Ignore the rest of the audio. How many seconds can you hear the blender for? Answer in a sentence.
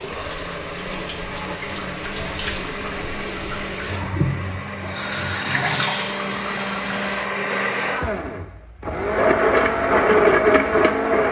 The blender can be heard for 11 seconds in total.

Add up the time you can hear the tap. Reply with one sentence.
You can hear the tap for 7 seconds altogether.